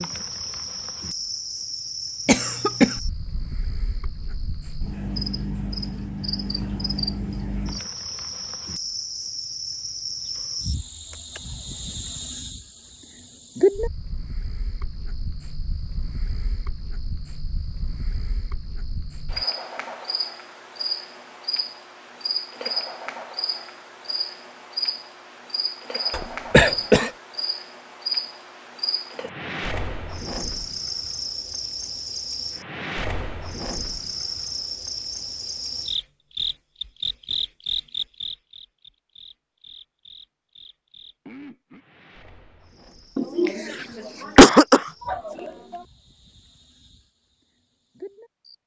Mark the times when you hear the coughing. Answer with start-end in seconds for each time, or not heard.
2.2-3.0, 26.1-27.1, 43.1-45.8.